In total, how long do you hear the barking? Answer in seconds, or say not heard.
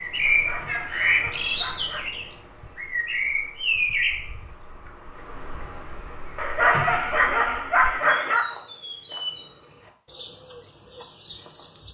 4 s.